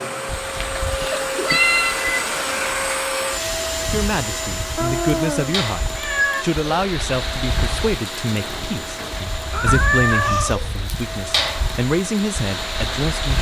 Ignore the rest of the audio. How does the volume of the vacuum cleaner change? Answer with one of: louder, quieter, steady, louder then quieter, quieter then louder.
quieter.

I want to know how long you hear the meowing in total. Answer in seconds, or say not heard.
4 s.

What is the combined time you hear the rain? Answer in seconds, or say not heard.
13 s.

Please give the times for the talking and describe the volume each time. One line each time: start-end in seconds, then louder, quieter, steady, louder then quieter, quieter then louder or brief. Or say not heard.
3.9-13.3 steady.